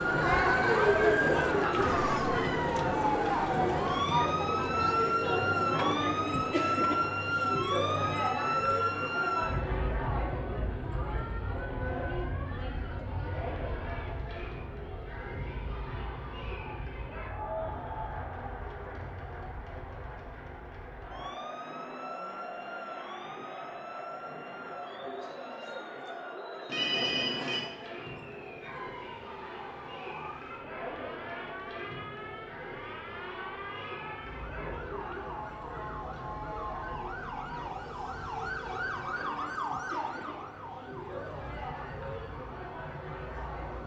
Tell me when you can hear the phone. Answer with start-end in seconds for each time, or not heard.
26.6-27.6.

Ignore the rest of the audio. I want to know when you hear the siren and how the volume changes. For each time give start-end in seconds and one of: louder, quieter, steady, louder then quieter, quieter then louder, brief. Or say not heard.
0.0-43.8 quieter then louder.